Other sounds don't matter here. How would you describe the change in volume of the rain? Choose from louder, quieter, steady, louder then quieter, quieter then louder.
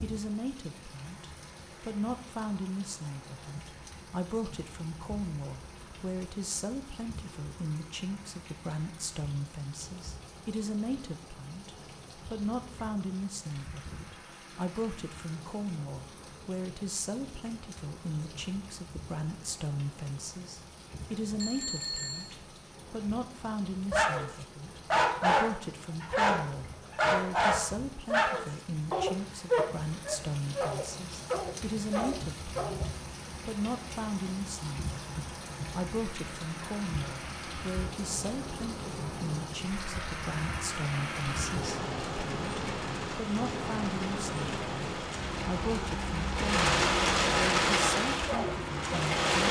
louder.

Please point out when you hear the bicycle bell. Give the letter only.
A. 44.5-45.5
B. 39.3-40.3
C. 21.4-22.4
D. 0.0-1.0
C.